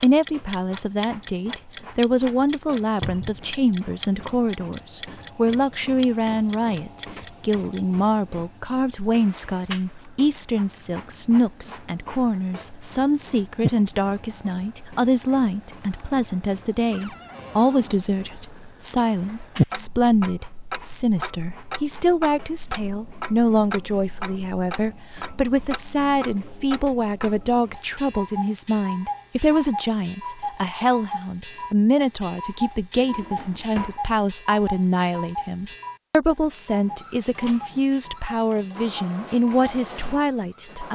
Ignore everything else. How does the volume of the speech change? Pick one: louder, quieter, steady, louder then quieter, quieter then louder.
steady.